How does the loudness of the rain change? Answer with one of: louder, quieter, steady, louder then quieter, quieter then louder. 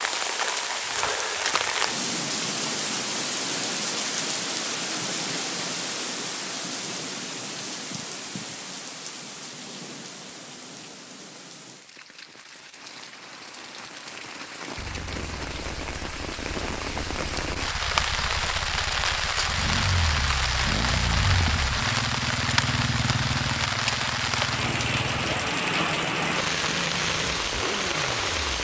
quieter then louder.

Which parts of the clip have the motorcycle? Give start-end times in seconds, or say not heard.
14.8-28.4.